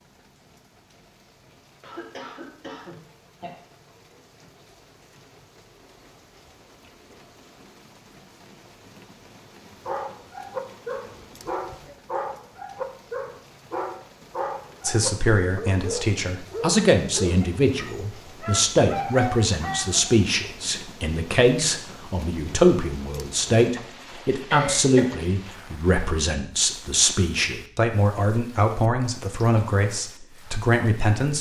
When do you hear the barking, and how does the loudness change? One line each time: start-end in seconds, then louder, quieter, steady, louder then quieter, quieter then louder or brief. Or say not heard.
9.8-20.1 steady.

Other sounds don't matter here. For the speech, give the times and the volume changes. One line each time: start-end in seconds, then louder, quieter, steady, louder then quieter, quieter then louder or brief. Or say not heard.
14.8-31.3 steady.